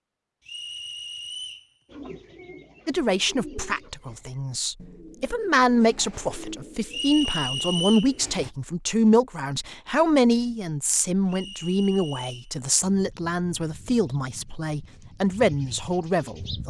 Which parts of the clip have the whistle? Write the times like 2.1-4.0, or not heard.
0.5-1.7, 6.9-8.2, 11.2-12.5.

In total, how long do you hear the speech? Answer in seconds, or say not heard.
14 s.